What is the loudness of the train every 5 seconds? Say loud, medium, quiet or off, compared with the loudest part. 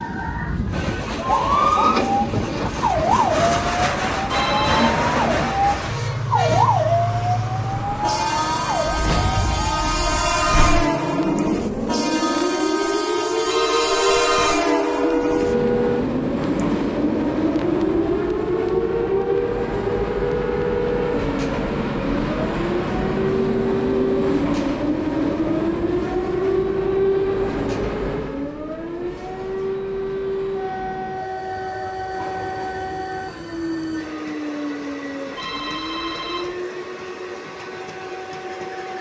loud, loud, loud, loud, loud, loud, quiet, quiet.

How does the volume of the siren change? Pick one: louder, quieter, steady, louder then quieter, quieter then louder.
quieter.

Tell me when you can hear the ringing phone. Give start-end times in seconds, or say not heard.
4.2-4.9, 13.4-14.6, 35.4-36.5.